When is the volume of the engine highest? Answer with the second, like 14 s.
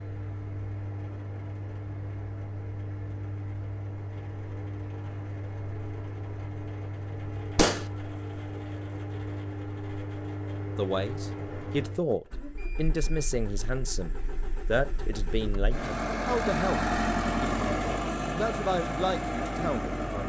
17 s.